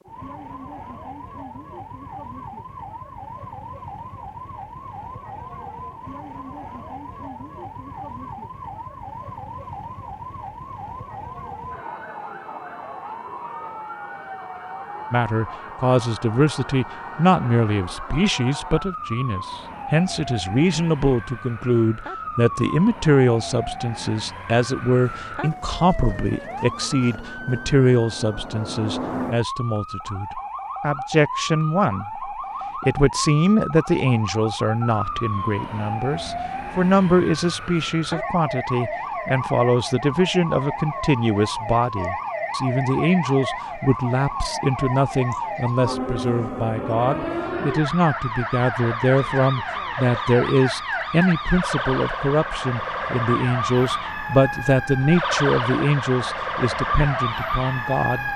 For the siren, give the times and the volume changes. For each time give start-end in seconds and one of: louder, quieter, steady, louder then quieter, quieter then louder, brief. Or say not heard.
0.0-58.3 louder.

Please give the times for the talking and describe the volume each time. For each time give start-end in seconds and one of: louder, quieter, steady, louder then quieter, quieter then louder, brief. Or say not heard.
15.1-58.3 steady.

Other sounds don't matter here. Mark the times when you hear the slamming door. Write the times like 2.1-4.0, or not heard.
not heard.